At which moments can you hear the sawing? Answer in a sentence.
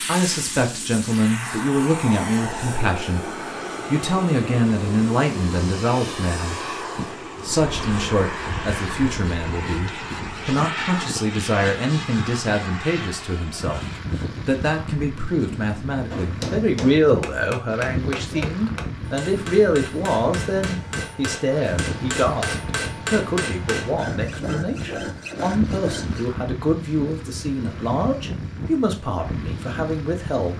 The sawing can be heard from 7.6 to 10.5 s and from 23.9 to 26.2 s.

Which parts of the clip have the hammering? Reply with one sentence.
The hammering can be heard from 16.1 to 23.9 s.